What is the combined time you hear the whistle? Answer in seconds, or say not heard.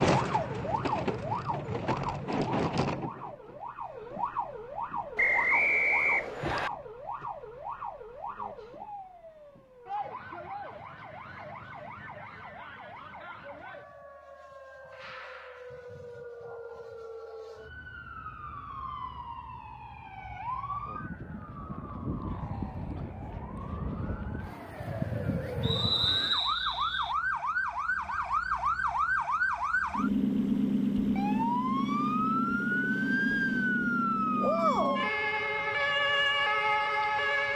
3 s.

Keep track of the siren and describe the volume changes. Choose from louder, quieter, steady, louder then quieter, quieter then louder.
quieter then louder.